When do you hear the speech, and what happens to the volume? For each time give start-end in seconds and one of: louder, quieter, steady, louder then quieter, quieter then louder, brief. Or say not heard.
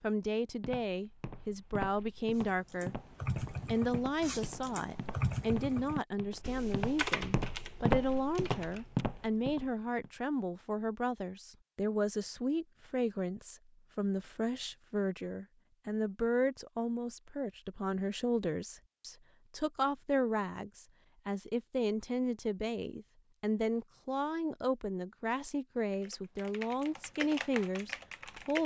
0.0-3.0 brief
3.6-28.6 steady.